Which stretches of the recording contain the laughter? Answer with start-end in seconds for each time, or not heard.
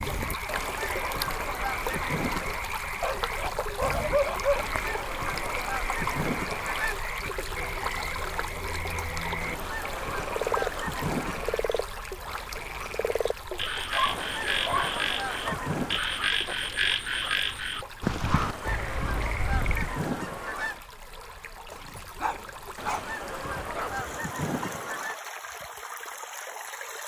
not heard.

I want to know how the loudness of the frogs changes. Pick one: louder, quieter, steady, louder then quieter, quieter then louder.
louder.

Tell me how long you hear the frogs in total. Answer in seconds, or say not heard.
20 s.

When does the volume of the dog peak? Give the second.
4 s.